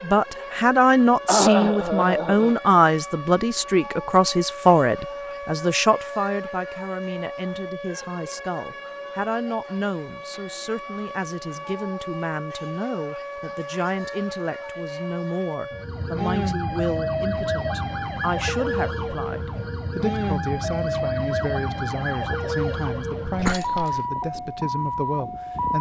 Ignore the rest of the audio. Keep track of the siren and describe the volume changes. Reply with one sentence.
The loudness of the siren goes up.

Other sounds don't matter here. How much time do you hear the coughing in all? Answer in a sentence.
The coughing can be heard for 2 seconds in total.